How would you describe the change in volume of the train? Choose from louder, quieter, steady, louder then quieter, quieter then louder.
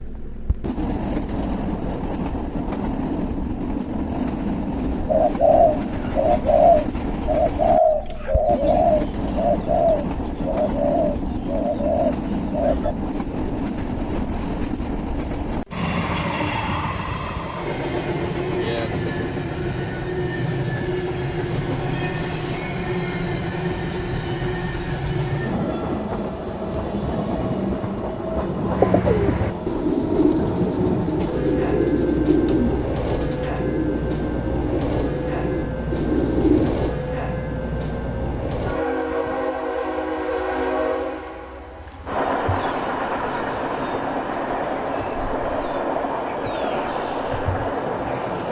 steady.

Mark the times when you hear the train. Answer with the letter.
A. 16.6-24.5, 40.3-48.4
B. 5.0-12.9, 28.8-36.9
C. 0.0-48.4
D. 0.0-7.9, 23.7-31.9
C.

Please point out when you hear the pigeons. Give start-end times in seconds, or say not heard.
5.0-12.9, 28.8-36.9.